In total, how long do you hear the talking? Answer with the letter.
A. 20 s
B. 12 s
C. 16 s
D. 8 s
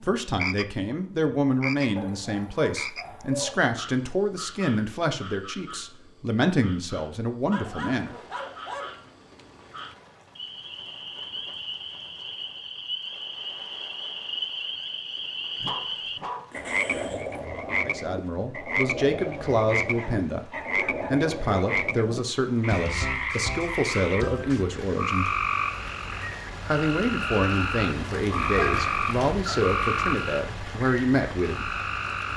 A.